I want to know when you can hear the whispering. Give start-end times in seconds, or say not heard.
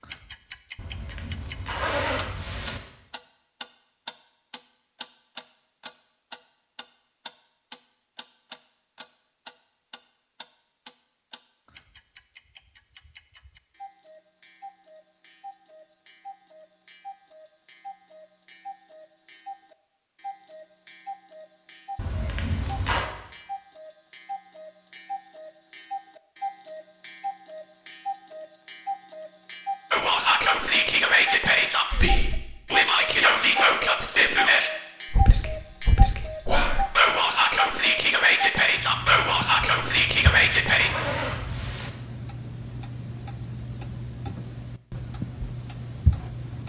29.9-41.0.